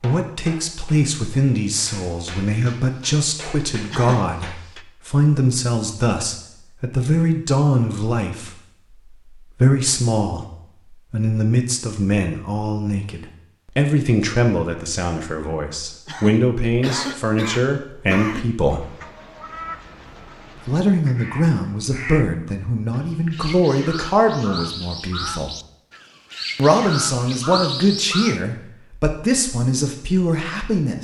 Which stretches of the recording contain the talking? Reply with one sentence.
The talking can be heard from 0.0 to 18.9 s, from 20.6 to 25.6 s and from 26.6 to 31.0 s.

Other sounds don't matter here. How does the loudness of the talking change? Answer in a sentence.
The loudness of the talking stays about the same.